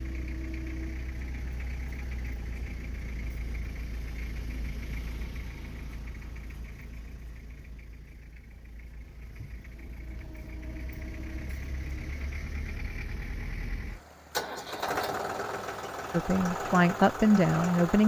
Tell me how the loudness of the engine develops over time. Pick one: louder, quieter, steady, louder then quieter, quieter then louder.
quieter then louder.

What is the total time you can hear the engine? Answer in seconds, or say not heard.
18 s.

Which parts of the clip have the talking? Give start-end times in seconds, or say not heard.
16.1-18.0.